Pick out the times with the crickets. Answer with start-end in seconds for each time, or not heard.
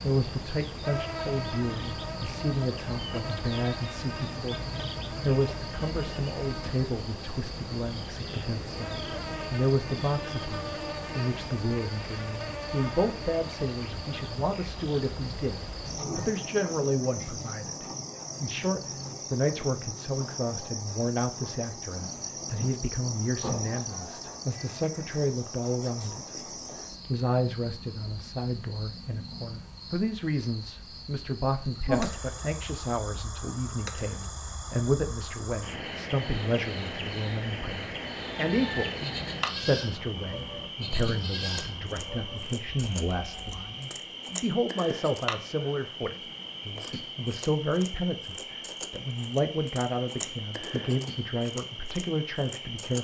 0.0-52.9.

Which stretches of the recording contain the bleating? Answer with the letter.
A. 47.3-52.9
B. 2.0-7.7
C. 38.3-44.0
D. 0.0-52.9
C.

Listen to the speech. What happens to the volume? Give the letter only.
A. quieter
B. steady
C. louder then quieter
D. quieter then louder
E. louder
B.